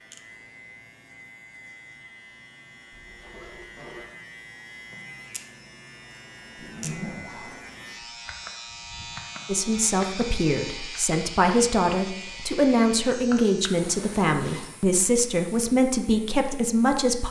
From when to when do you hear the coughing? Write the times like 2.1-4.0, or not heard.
not heard.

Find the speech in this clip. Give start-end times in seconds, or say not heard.
9.4-17.2.